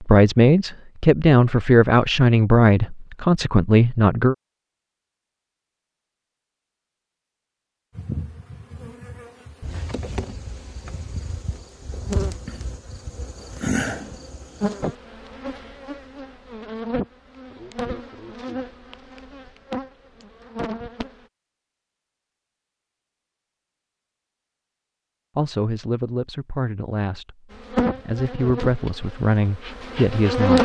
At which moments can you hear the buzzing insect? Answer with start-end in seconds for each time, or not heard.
8.0-21.2, 27.5-30.6.